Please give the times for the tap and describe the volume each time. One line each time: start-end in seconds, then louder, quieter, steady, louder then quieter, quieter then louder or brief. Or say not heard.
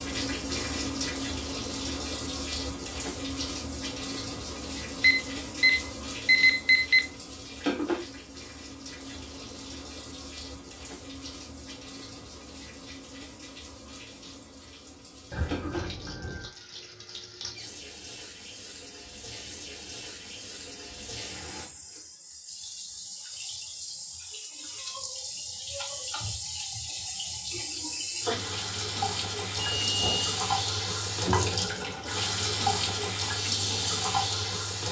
0.0-34.8 quieter then louder.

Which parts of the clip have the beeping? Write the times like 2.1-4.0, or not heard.
5.0-7.0, 15.3-16.5, 29.6-30.4.